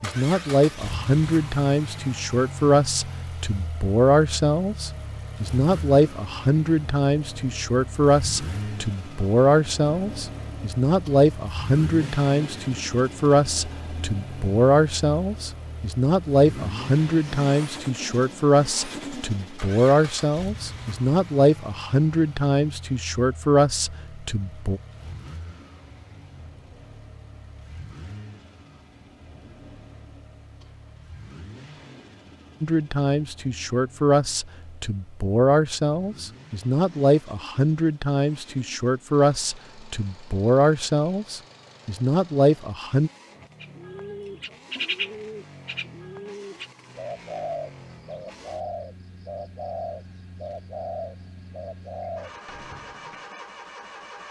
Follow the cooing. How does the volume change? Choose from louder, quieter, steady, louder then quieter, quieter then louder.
quieter.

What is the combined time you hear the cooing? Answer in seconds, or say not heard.
10 s.